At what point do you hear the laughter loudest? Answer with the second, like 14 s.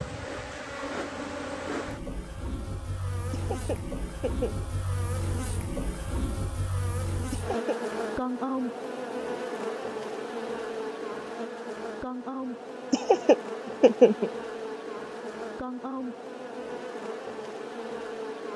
14 s.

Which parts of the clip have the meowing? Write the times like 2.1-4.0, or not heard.
not heard.